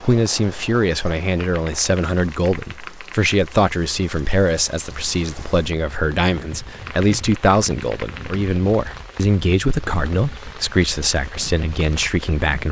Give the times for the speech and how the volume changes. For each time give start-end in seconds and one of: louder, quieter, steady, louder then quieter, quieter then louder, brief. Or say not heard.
0.0-12.6 steady.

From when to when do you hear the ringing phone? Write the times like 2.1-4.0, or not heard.
not heard.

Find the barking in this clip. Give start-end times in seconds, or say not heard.
not heard.